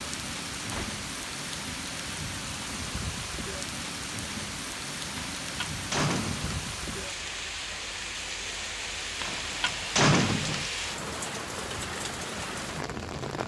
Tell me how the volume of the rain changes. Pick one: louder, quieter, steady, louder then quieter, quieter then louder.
steady.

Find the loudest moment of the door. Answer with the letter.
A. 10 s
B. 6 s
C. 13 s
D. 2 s
A.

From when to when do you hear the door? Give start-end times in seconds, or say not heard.
0.7-1.1, 5.2-6.7, 9.2-10.7.